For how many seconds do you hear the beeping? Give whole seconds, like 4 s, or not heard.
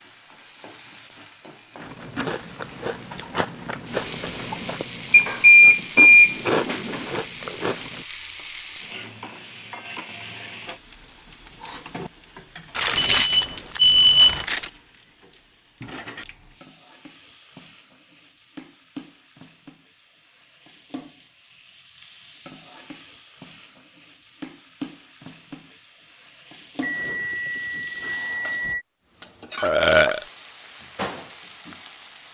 6 s.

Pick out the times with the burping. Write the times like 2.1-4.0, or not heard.
29.6-30.2.